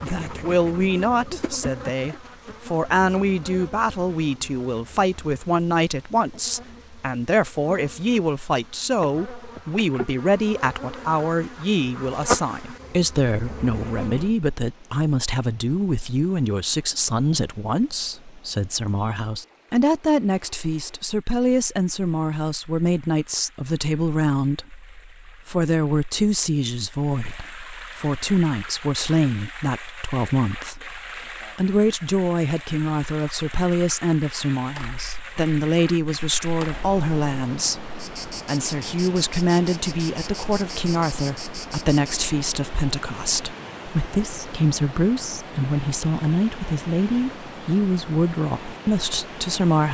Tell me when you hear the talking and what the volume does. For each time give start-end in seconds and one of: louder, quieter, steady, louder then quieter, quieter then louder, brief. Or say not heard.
0.0-49.8 steady.